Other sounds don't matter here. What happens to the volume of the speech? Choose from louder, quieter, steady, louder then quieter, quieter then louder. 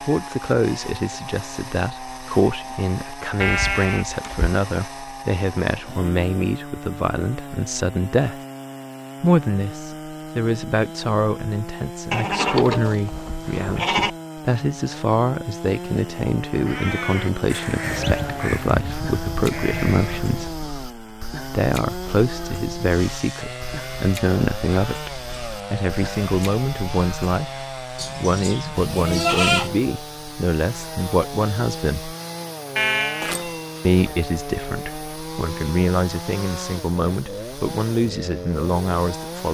steady.